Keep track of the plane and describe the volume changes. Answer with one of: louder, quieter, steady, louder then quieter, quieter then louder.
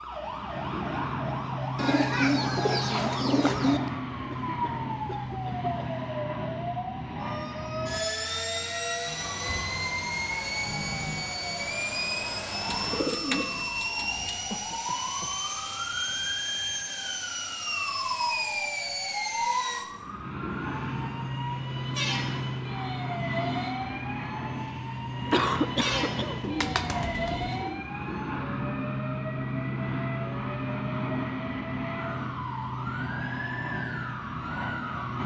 steady.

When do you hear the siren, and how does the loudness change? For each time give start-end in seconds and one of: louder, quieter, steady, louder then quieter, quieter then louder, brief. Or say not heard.
0.0-35.2 steady.